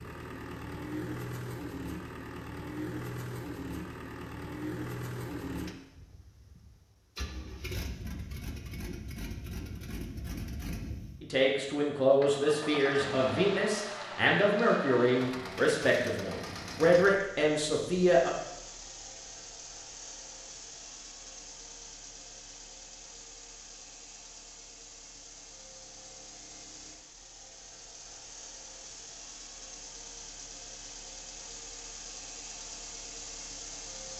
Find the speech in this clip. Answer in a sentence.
You can hear the speech from 11.2 to 18.3 s.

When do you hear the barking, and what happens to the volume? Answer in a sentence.
The barking can't be heard in this clip.